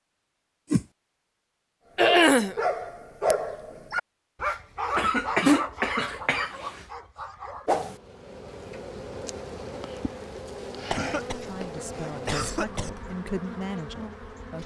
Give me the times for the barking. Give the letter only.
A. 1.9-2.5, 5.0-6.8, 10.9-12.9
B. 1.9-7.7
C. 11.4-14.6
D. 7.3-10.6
B.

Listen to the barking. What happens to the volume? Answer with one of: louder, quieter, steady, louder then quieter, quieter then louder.
quieter.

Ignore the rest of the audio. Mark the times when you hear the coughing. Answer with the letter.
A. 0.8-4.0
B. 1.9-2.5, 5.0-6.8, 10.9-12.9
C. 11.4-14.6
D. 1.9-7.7
B.